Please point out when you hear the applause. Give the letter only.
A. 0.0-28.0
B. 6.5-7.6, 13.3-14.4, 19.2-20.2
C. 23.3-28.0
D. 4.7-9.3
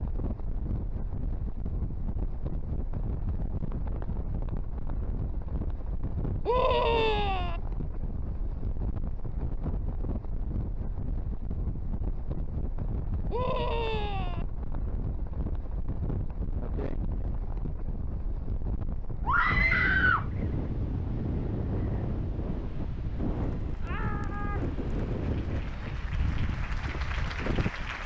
C.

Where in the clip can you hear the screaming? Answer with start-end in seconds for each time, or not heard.
6.5-7.6, 13.3-14.4, 19.2-20.2.